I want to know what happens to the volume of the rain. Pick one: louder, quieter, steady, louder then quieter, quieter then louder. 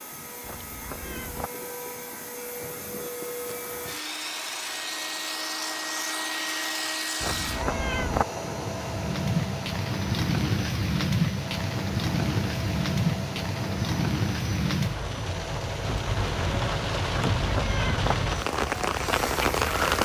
steady.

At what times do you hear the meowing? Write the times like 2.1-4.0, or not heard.
0.4-1.5, 7.2-8.2, 17.1-18.1.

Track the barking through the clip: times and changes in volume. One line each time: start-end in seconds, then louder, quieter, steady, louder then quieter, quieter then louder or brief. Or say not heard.
not heard.